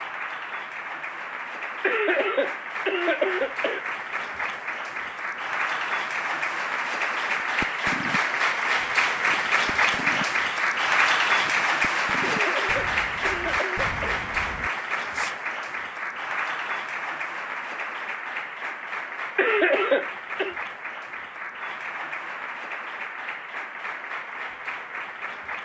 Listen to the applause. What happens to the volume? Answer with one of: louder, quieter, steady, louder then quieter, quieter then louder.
louder then quieter.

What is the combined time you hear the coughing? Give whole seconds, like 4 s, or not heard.
5 s.